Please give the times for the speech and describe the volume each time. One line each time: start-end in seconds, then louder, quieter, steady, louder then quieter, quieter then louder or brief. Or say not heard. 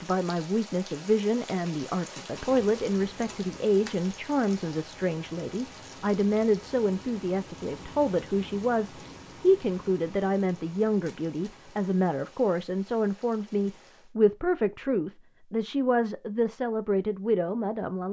0.0-18.0 steady.